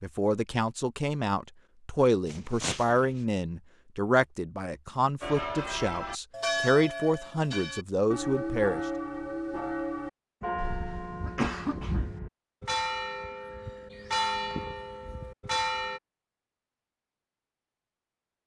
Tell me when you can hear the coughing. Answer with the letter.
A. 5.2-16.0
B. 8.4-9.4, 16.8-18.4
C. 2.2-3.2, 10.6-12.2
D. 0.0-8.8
C.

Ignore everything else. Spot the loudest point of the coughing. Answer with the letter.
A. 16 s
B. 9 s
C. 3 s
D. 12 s
D.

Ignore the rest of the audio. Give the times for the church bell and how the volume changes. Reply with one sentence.
The church bell can be heard from 5.2 to 16.0 s, at a steady volume.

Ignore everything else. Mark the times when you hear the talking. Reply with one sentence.
The talking can be heard from 0.0 to 8.8 s.